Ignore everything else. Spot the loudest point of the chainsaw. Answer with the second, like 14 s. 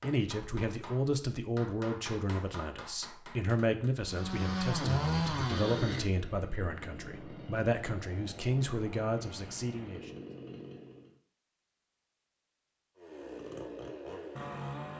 5 s.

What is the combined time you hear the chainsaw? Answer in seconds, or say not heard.
9 s.